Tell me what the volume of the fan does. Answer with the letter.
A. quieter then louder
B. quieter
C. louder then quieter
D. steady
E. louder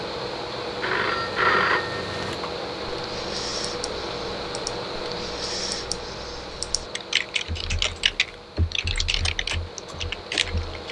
B.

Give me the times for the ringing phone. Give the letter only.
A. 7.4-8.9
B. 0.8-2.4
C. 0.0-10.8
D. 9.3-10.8
B.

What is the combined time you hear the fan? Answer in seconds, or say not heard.
11 s.